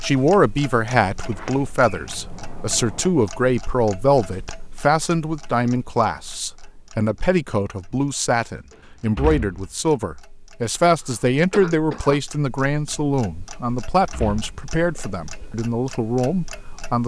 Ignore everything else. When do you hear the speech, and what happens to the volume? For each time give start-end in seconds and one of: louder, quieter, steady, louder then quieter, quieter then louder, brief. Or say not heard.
0.0-17.0 steady.